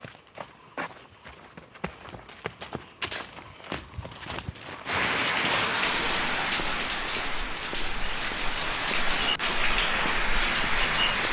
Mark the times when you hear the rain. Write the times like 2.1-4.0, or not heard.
4.8-11.2.